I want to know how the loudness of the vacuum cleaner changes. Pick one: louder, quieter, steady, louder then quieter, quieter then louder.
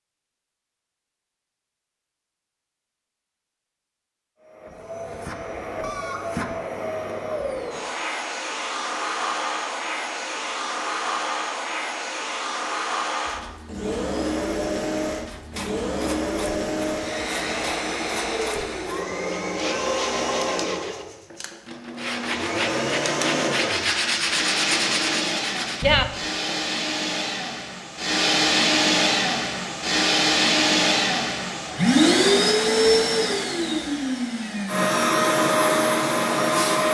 louder.